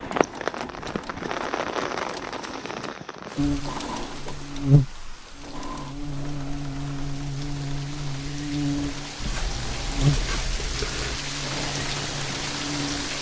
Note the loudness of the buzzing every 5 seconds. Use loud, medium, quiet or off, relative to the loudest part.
loud, medium, medium.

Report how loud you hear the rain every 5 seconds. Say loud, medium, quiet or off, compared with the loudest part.
loud, medium, loud.